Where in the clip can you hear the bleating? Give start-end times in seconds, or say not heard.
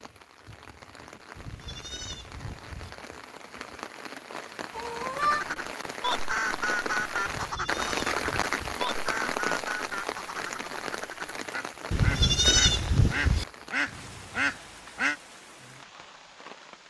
1.4-2.9, 7.2-8.8, 11.9-13.4.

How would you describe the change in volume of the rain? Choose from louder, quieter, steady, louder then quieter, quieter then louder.
louder then quieter.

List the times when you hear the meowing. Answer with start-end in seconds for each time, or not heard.
4.7-5.5.